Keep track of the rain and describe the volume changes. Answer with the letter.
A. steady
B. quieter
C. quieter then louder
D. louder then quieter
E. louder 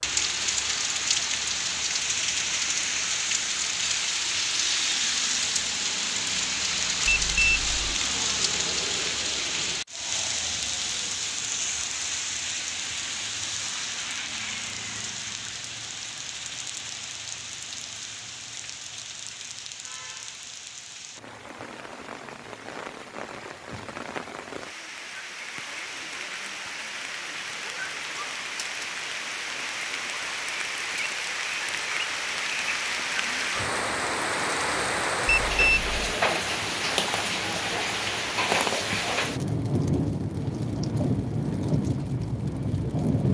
C.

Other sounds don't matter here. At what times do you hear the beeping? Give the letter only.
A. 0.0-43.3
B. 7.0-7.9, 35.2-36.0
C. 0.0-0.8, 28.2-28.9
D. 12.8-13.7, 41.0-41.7
B.